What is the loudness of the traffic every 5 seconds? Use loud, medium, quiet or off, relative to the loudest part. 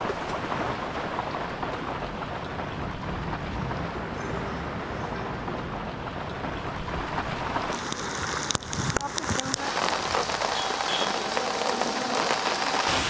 loud, loud, medium.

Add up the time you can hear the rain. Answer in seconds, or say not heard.
13 s.